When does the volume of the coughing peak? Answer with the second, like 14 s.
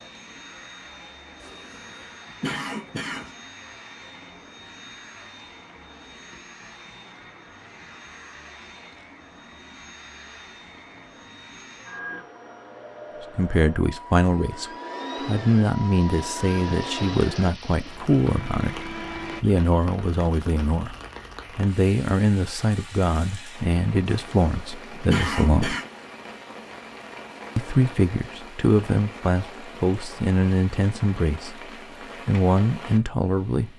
25 s.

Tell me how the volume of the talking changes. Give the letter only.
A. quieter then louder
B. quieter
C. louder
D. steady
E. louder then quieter
D.